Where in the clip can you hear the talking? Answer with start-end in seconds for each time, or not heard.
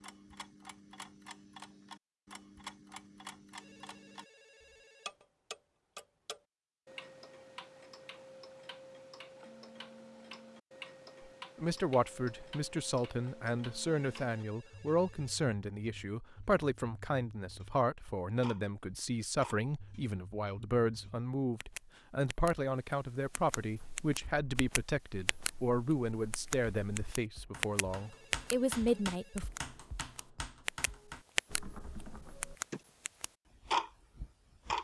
11.6-29.5.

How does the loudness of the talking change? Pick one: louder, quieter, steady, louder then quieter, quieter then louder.
steady.